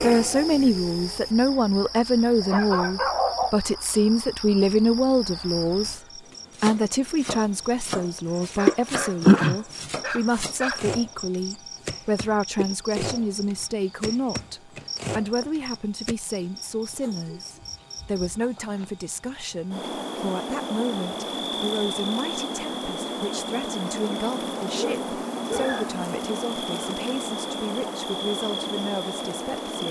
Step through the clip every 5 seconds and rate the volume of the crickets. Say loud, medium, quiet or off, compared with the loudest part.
medium, loud, quiet, quiet, medium, medium.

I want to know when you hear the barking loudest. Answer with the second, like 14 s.
3 s.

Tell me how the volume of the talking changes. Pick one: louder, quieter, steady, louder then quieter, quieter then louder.
quieter.